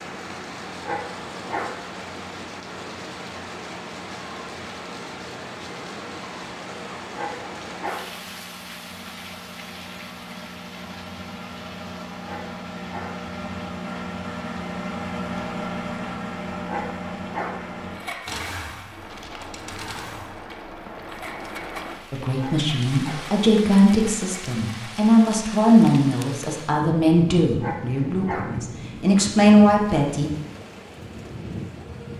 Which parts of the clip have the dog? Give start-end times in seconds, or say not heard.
0.8-1.9, 7.2-8.2, 12.2-13.3, 16.6-17.8, 22.4-23.4, 27.6-28.6.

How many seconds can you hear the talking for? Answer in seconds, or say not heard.
8 s.